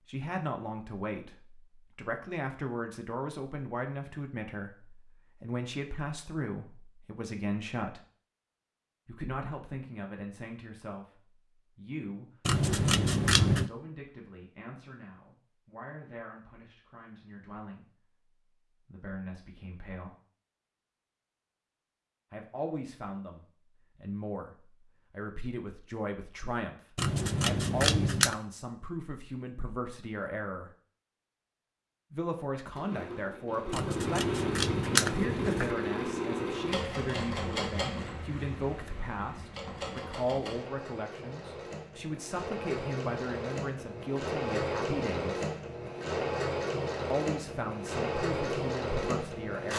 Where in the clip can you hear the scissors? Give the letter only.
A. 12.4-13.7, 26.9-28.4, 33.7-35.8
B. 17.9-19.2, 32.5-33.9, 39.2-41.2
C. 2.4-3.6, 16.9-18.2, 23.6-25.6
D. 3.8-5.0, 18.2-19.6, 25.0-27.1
A.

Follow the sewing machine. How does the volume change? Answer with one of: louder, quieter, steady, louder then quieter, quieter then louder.
quieter then louder.